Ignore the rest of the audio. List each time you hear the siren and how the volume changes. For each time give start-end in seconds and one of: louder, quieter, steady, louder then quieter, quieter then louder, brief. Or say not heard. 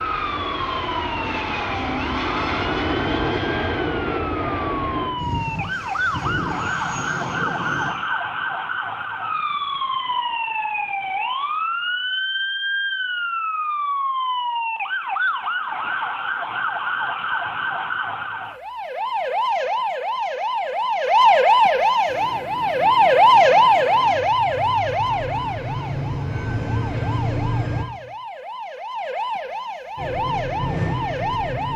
0.0-31.7 louder then quieter.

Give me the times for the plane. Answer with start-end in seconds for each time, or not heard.
0.0-7.9, 22.1-27.9, 29.9-31.7.